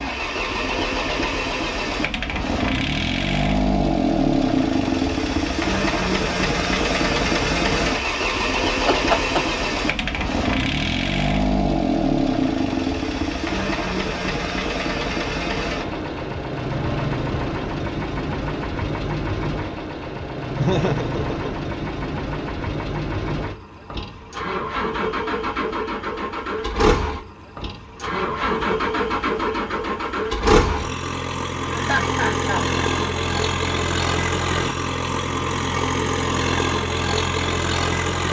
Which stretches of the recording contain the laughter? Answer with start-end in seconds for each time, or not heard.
8.8-10.1, 20.6-21.4, 31.7-32.6.